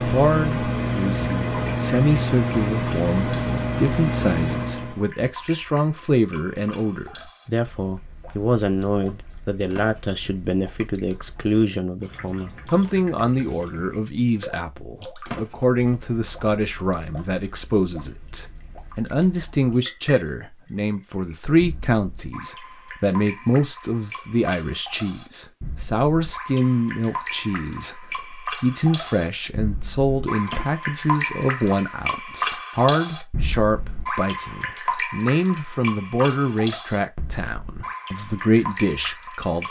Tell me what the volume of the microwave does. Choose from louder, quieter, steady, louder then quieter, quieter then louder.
steady.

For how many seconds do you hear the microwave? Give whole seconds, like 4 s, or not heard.
5 s.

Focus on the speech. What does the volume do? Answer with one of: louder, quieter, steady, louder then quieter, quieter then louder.
steady.